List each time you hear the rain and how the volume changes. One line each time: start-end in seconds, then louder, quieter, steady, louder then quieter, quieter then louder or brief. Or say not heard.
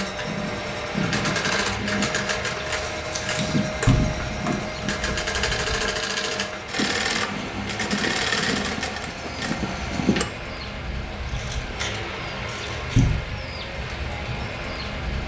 0.2-15.2 steady.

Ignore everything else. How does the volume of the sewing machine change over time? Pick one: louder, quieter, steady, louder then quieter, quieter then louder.
steady.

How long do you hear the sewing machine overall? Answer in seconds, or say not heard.
10 s.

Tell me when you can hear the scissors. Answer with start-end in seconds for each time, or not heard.
2.9-3.6, 11.2-13.2.